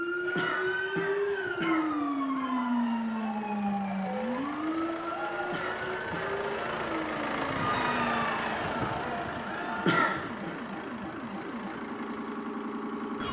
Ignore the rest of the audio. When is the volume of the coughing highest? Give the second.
10 s.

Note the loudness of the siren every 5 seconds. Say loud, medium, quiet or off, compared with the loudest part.
loud, medium, medium.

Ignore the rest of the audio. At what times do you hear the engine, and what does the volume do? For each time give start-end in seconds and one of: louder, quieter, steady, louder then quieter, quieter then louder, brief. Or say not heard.
0.0-13.2 louder then quieter.